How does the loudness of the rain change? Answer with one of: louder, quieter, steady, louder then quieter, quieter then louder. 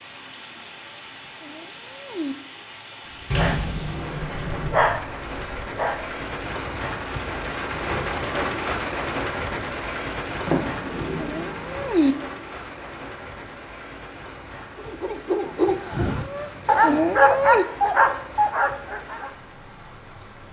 louder then quieter.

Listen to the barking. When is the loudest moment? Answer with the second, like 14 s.
17 s.